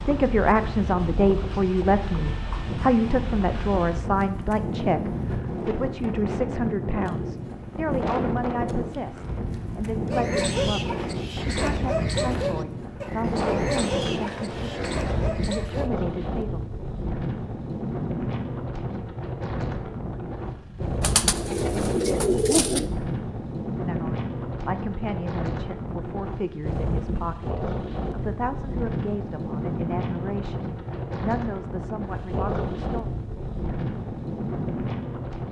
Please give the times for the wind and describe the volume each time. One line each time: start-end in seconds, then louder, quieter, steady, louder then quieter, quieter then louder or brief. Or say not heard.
0.0-35.4 steady.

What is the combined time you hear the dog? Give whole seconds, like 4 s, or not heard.
6 s.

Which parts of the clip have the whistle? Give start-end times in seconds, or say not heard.
not heard.